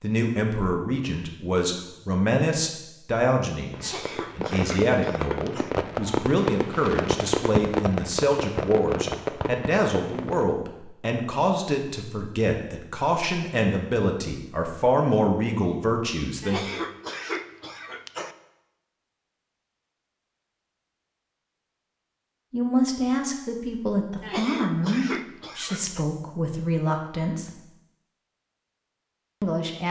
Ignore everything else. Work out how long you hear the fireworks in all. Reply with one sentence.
You can hear the fireworks for 7 seconds altogether.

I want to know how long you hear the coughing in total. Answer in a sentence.
You can hear the coughing for 6 seconds altogether.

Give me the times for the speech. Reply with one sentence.
The speech can be heard from 0.0 to 16.7 s, from 22.5 to 27.5 s and from 29.4 to 29.8 s.